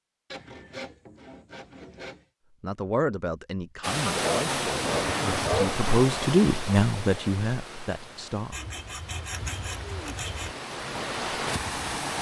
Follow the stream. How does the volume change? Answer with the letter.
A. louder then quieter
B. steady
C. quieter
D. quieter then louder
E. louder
D.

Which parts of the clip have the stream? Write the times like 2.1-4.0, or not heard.
3.8-12.1.